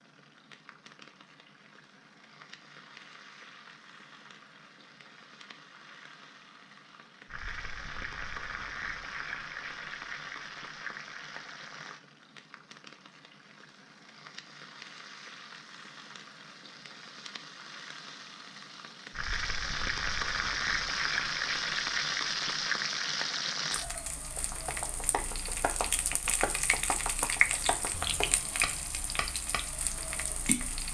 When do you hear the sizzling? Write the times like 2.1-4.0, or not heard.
0.0-30.8.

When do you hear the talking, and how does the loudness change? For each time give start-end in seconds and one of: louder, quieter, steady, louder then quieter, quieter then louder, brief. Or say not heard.
not heard.